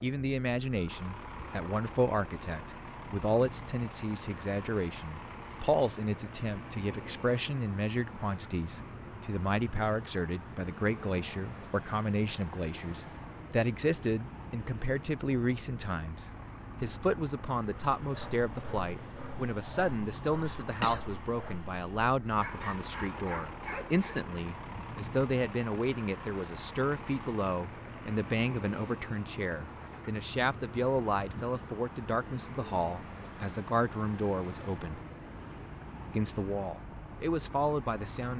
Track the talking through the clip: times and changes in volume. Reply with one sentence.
The talking can be heard from 0.0 to 35.0 s, at a steady volume; and briefly from 36.1 to 38.3 s.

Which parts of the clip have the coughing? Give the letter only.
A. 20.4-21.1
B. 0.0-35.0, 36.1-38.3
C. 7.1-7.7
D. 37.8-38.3
A.